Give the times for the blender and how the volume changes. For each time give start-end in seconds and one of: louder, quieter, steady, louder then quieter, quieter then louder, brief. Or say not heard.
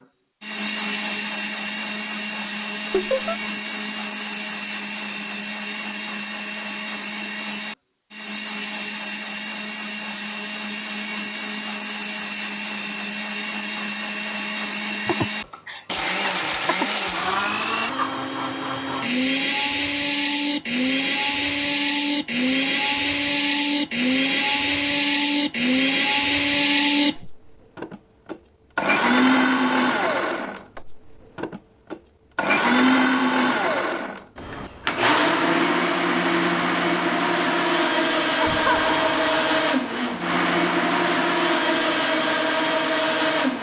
0.4-43.5 louder.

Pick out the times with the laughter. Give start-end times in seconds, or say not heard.
2.9-3.4, 15.1-16.9, 38.4-39.6.